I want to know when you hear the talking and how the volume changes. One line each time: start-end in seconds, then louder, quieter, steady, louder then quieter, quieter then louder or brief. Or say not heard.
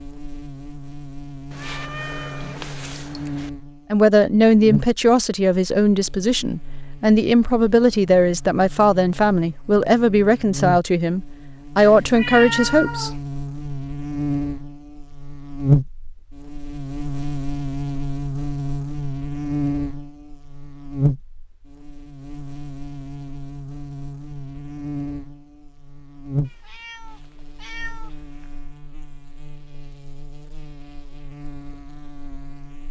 3.9-13.1 steady.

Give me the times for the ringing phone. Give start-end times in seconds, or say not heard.
not heard.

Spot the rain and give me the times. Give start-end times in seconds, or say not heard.
not heard.